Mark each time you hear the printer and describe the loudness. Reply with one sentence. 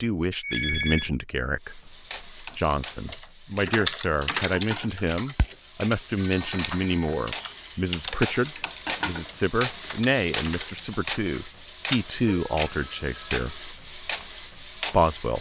You can hear the printer from 1.6 to 15.3 s, getting louder.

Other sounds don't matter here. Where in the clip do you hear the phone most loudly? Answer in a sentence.
The volume of the phone peaks at 1 second.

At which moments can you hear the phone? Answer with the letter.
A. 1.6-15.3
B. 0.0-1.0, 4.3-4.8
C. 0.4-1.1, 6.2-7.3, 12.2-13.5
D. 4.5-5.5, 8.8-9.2
C.